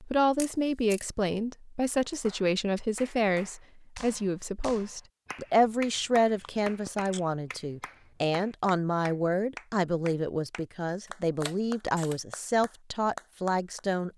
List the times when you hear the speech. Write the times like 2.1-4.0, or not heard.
0.0-14.1.